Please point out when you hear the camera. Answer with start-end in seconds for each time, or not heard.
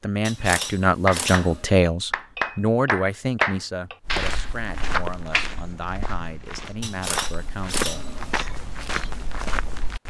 0.2-1.6, 6.8-8.4.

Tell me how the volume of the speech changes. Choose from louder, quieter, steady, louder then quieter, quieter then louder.
quieter.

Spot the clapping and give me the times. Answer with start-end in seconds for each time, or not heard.
0.4-5.5.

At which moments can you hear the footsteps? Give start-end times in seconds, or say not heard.
4.0-10.0.